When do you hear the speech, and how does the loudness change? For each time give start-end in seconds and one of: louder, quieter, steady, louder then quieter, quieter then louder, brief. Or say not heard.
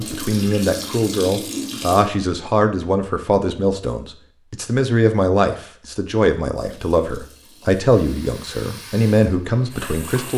0.0-10.3 steady.